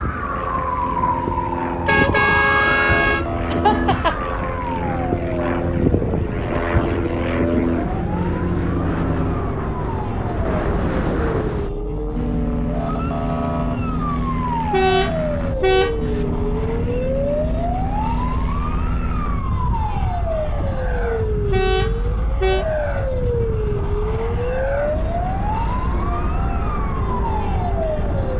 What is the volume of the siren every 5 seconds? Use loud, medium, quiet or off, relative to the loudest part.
loud, medium, loud, loud, loud, loud.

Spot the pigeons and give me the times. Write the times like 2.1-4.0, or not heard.
not heard.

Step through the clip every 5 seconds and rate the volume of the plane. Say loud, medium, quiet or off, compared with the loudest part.
loud, loud, loud, medium, medium, medium.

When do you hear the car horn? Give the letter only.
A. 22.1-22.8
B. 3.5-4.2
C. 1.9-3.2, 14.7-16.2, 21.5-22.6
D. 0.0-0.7
C.